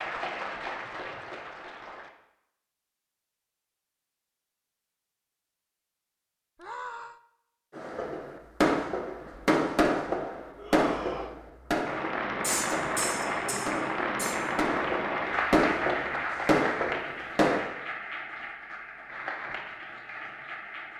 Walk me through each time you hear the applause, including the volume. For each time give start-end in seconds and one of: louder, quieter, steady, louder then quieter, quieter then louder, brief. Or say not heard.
0.0-2.1 brief
11.8-20.9 quieter.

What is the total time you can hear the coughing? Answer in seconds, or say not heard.
2 s.